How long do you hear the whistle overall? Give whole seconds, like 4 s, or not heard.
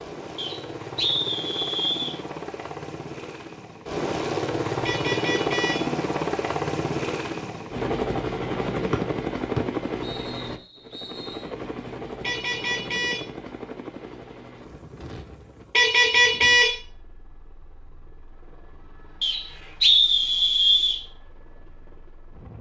6 s.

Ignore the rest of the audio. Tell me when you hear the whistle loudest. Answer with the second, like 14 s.
20 s.